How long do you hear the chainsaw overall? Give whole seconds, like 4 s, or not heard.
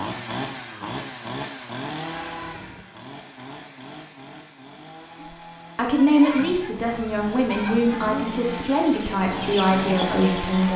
11 s.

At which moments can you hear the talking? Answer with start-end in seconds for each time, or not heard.
5.2-10.7.